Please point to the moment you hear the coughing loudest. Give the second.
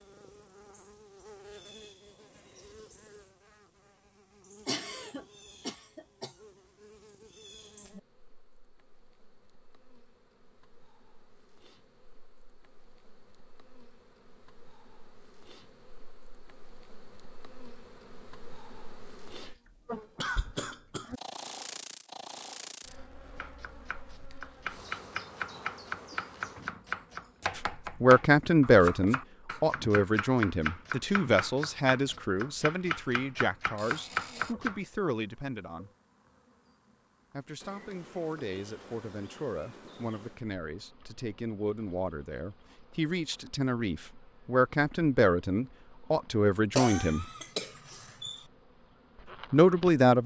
47 s.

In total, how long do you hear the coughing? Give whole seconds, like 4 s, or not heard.
5 s.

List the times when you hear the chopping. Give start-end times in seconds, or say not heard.
23.4-34.8.